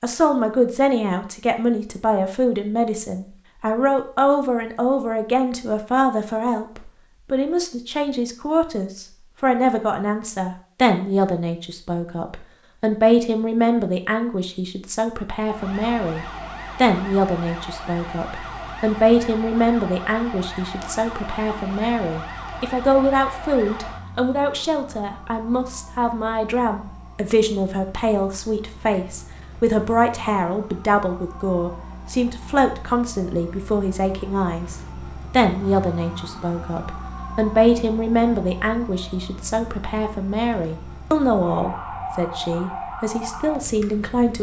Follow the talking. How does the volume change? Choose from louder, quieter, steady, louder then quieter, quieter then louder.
steady.